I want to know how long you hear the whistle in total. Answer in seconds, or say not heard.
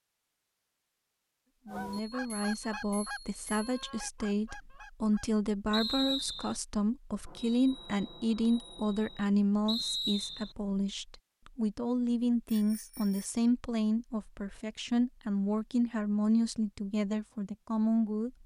2 s.